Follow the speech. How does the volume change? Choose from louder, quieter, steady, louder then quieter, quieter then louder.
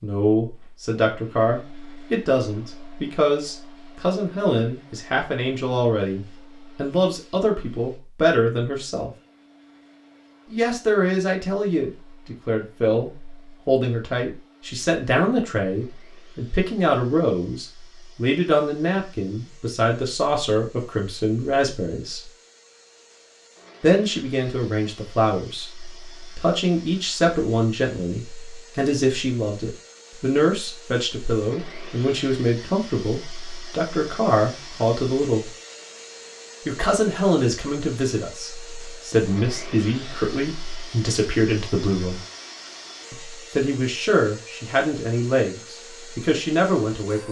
steady.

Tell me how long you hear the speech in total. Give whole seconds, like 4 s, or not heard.
42 s.